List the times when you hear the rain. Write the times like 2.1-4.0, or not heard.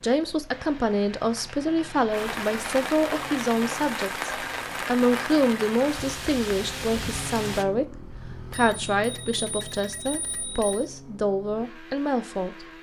0.1-7.7.